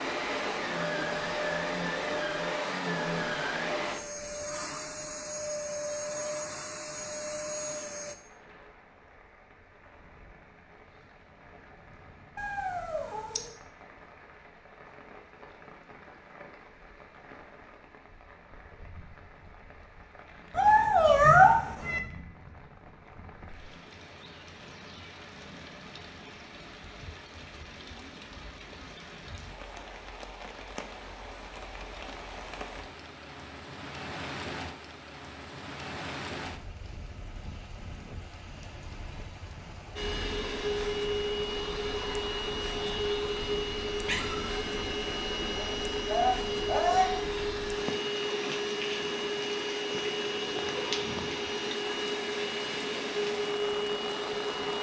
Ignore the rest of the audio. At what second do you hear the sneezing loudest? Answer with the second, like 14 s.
47 s.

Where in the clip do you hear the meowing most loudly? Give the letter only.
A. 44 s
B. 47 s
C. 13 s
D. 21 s
D.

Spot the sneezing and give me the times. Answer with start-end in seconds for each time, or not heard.
45.5-47.1.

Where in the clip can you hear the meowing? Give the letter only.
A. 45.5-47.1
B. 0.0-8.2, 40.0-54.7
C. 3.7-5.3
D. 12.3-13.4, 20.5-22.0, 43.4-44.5
D.